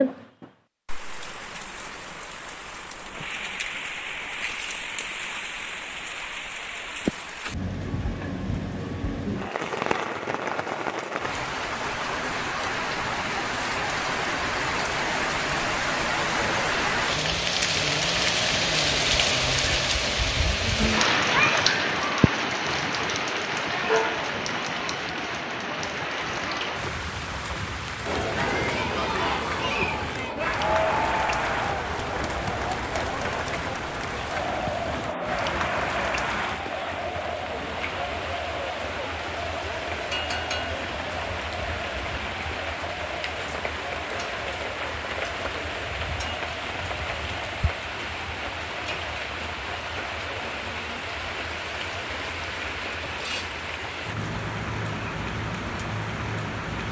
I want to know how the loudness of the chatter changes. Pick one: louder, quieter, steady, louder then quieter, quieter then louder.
quieter.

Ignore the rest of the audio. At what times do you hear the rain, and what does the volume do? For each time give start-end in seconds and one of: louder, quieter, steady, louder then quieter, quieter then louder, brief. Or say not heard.
0.0-56.8 louder then quieter.